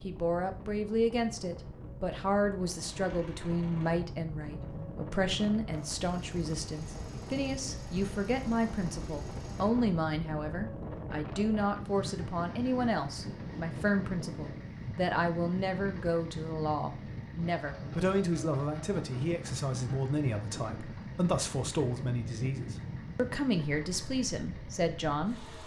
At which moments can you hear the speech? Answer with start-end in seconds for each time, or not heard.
0.0-25.4.